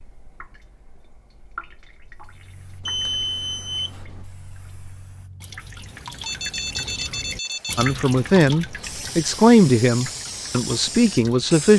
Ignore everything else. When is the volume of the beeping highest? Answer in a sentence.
The volume of the beeping peaks at 3 seconds.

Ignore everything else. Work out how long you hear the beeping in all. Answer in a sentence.
You can hear the beeping for 3 seconds altogether.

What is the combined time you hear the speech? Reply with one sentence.
The speech can be heard for 4 seconds in total.